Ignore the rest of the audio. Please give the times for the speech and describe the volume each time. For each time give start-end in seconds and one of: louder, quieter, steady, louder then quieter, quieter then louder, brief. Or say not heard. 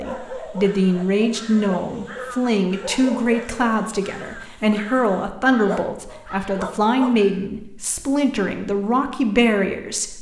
0.0-10.1 steady.